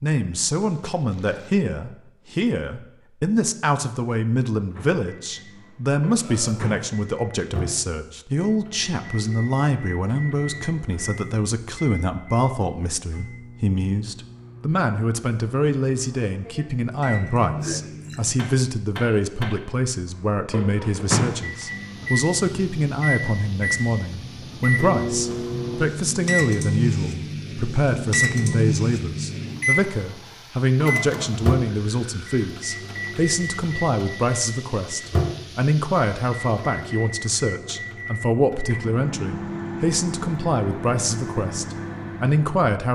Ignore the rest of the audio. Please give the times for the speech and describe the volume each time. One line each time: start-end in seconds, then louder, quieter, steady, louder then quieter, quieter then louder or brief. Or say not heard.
0.0-42.8 steady.